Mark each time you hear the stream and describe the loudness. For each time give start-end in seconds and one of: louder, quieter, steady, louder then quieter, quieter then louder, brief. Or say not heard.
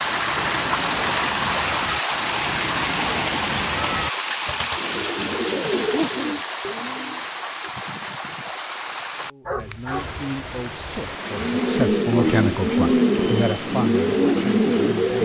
0.0-15.1 quieter.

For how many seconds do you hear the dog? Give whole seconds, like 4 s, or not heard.
2 s.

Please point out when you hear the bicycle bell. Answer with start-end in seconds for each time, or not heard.
13.2-13.7.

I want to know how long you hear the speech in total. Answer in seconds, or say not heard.
6 s.